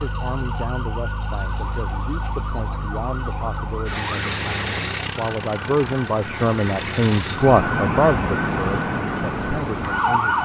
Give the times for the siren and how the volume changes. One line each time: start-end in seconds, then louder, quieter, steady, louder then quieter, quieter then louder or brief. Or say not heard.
0.0-10.4 louder.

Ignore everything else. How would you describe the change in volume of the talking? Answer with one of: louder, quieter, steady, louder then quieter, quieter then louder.
louder then quieter.